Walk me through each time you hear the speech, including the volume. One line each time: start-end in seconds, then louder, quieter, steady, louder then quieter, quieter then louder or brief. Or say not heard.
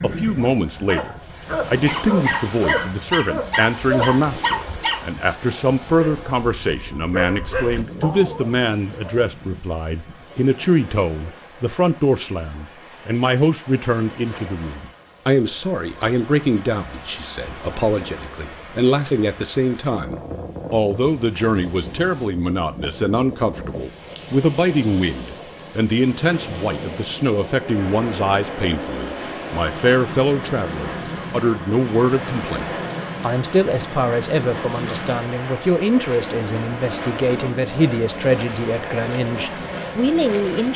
0.0-40.7 steady.